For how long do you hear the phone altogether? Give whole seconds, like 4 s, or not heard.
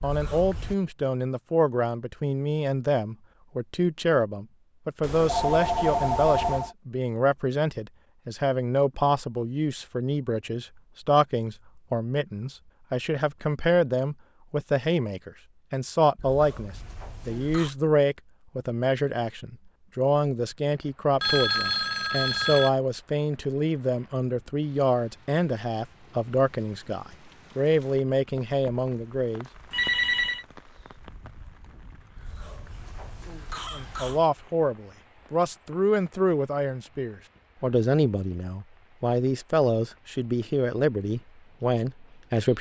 4 s.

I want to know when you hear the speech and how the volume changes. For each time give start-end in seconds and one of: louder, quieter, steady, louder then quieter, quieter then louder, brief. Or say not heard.
0.0-29.4 steady
33.7-42.5 steady.